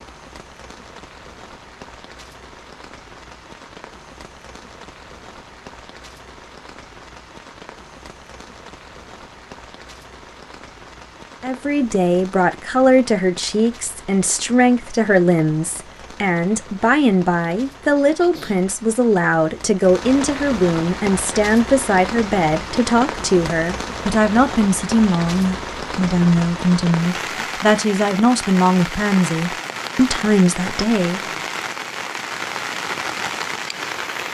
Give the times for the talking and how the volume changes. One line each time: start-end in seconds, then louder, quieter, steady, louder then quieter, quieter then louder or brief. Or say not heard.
11.4-31.2 steady.